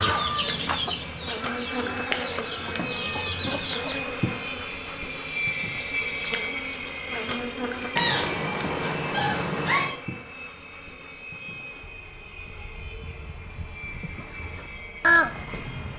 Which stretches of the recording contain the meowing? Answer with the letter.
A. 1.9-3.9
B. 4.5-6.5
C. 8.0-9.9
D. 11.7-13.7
C.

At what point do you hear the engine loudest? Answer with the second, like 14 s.
6 s.